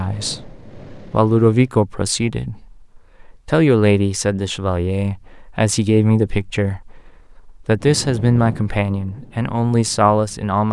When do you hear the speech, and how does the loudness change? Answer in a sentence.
The speech can be heard from 0.0 to 10.6 s, at a steady volume.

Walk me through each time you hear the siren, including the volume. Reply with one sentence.
You can't hear the siren here.